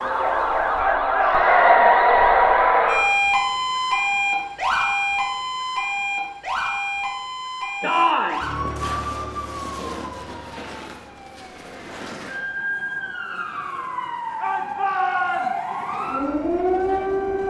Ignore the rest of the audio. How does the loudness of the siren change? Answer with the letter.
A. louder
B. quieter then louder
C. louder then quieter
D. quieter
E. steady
B.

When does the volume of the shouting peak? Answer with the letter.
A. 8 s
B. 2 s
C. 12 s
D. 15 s
A.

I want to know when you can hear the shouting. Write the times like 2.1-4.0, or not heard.
0.8-2.1, 7.8-8.4, 14.4-15.8.